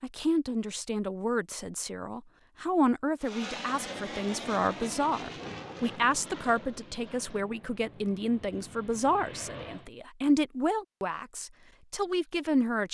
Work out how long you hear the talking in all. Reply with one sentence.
You can hear the talking for 13 seconds altogether.